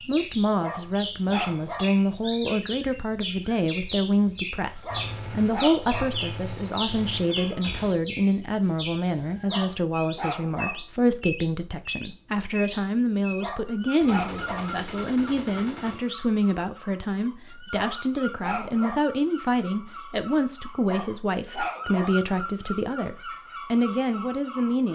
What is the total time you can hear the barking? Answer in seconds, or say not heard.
8 s.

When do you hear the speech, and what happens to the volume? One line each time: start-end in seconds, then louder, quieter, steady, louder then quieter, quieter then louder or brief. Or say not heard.
0.1-24.9 steady.